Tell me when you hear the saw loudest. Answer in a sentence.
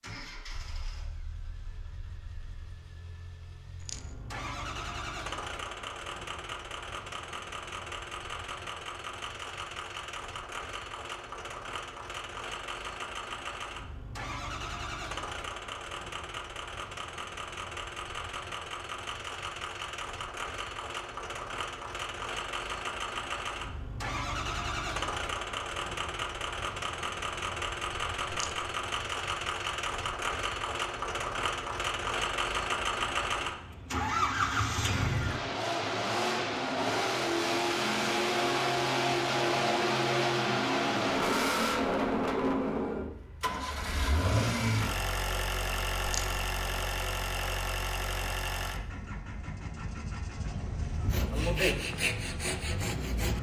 The volume of the saw peaks at 52 seconds.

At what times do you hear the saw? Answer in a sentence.
The saw can be heard from 51.0 to 53.3 s.